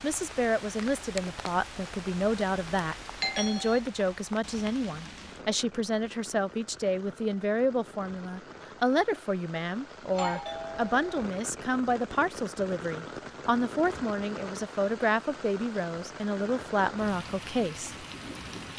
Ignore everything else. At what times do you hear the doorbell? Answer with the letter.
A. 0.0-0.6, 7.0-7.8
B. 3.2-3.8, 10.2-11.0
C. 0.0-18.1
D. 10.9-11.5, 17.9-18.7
B.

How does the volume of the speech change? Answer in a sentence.
The loudness of the speech stays about the same.